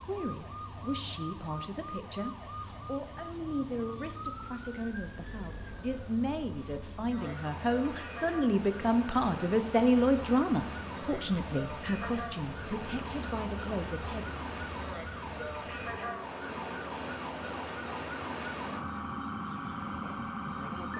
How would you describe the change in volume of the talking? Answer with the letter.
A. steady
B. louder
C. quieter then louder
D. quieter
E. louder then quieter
E.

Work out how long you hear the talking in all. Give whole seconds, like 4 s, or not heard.
14 s.